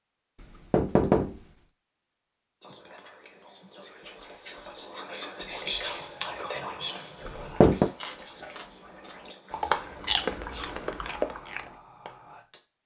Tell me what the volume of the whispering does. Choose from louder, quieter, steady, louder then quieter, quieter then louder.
louder then quieter.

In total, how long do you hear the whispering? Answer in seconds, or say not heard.
10 s.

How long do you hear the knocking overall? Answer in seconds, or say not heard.
2 s.